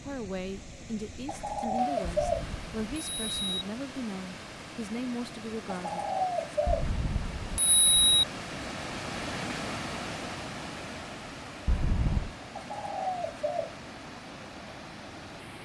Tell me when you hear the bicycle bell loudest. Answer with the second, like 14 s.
8 s.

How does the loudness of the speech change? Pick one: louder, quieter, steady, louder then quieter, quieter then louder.
steady.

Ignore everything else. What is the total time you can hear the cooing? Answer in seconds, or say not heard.
4 s.